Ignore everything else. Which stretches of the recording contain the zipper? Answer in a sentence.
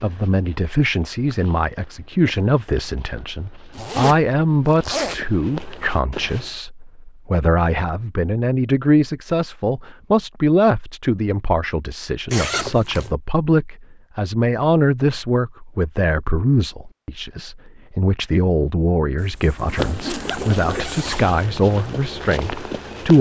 The zipper can be heard from 3.7 to 5.2 s, from 12.2 to 13.2 s and from 19.1 to 21.4 s.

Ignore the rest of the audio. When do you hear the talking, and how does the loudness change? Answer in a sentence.
The talking can be heard from 0.0 to 23.1 s, at a steady volume.